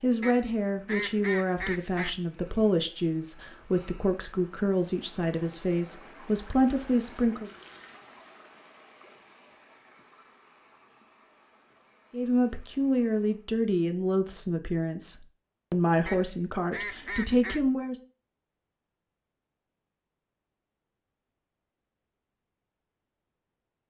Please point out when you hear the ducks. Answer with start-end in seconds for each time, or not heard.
0.2-2.1, 16.1-17.6.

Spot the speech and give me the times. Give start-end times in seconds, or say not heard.
0.0-7.5, 12.1-17.9.